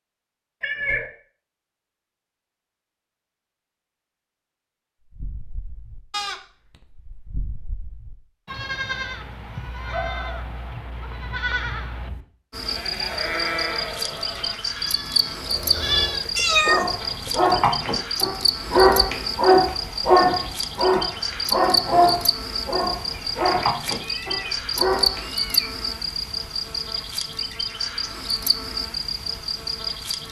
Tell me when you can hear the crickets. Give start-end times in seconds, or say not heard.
12.5-30.2.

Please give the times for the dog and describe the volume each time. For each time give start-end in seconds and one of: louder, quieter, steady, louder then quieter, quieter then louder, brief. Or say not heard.
16.6-25.2 louder then quieter.